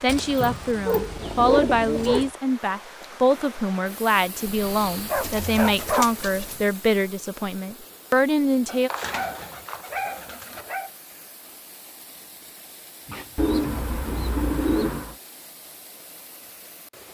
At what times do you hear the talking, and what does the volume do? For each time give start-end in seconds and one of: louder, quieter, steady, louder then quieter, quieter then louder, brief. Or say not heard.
0.0-8.9 steady.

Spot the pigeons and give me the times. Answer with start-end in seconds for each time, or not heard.
0.1-2.3, 5.0-6.6, 8.9-10.7, 13.3-15.2.